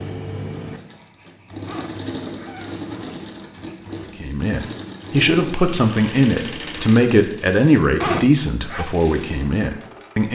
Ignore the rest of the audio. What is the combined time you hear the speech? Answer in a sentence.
You can hear the speech for 6 seconds altogether.